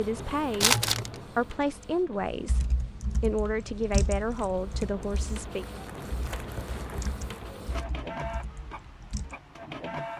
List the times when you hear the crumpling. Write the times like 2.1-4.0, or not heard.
0.6-1.2, 5.7-7.5.